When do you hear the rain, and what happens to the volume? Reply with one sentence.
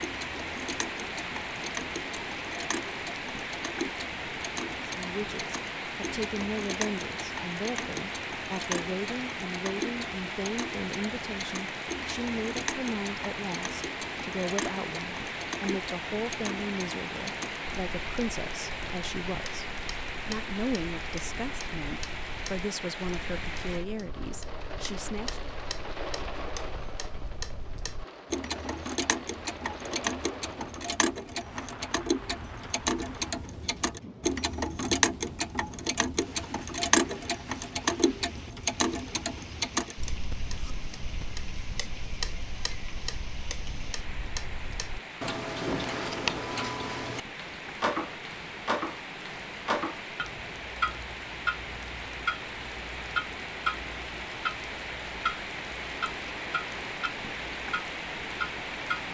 The rain can be heard from 0.0 to 59.1 s, getting quieter then louder.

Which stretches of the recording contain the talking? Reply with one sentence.
The talking can be heard from 4.8 to 19.6 s and from 20.2 to 25.5 s.